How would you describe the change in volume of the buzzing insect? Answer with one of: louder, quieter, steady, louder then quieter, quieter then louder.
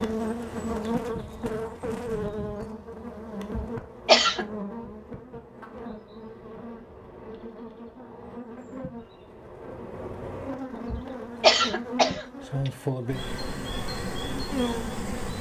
quieter then louder.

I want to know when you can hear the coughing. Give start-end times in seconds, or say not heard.
3.5-4.5, 10.9-12.7.